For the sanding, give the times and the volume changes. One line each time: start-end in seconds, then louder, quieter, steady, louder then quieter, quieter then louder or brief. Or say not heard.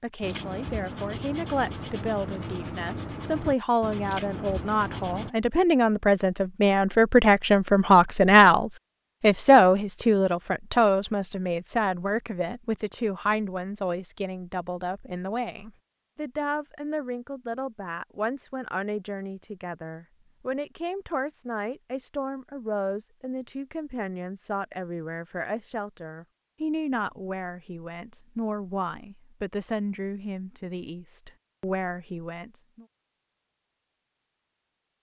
0.2-5.3 steady.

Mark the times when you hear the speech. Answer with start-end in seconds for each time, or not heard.
0.0-32.9.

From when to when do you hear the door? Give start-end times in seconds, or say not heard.
not heard.